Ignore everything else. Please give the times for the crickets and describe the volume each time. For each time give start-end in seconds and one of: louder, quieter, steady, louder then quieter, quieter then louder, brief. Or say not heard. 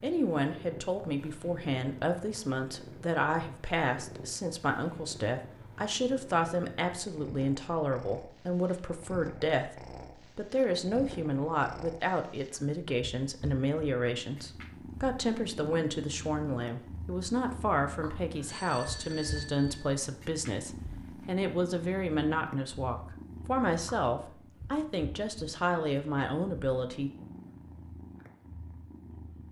not heard.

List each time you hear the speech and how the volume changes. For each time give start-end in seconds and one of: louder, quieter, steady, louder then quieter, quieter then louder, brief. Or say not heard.
0.0-27.1 steady.